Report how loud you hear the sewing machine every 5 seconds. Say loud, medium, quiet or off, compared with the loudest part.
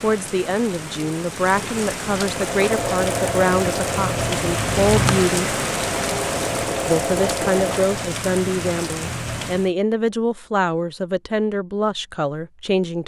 loud, loud, off.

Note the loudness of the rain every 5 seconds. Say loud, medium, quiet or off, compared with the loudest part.
loud, loud, off.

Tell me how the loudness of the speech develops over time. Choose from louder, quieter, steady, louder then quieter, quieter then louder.
steady.